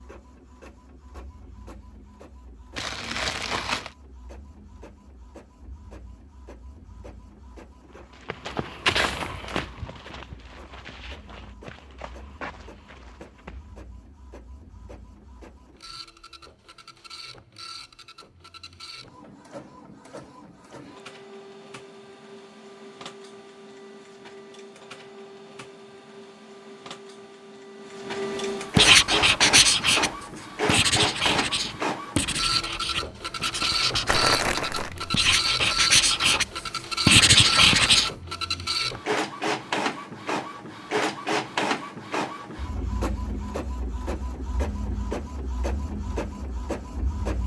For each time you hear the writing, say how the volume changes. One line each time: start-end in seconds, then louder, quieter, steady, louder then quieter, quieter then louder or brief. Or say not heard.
28.8-34.3 quieter
35.1-36.5 brief
37.0-38.1 brief.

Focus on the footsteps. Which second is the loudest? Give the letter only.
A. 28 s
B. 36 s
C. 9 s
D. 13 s
C.